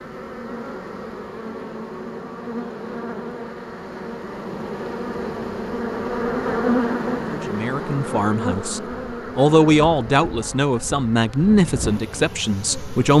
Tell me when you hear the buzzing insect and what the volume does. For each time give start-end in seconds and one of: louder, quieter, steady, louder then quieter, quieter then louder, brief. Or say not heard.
0.0-13.1 louder then quieter.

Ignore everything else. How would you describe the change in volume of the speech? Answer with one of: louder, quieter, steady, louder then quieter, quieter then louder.
louder then quieter.